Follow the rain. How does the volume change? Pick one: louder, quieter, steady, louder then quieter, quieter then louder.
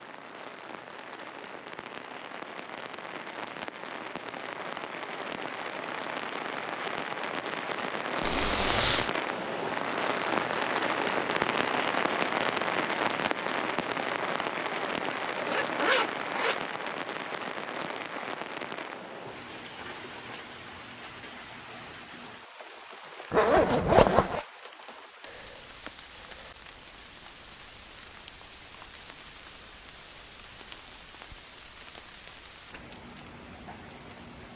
louder then quieter.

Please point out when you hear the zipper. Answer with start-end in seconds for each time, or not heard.
8.2-9.1, 15.3-17.1, 23.3-24.4.